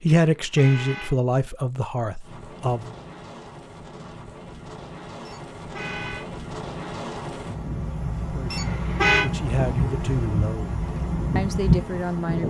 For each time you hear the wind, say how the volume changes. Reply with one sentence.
You can hear the wind from 2.2 to 12.4 s, getting louder.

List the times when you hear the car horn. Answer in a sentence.
You can hear the car horn from 0.2 to 1.1 s, from 5.2 to 6.2 s and from 8.5 to 9.2 s.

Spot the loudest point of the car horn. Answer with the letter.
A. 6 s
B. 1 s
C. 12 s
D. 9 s
D.